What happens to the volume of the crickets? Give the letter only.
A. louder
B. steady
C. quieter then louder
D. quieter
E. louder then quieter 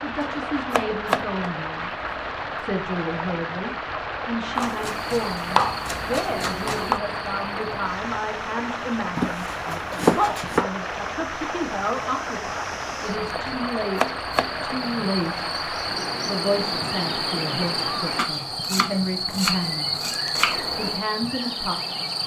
C.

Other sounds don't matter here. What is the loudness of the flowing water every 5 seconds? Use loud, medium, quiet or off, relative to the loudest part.
loud, loud, loud, loud, off.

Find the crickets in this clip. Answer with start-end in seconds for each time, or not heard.
4.9-22.2.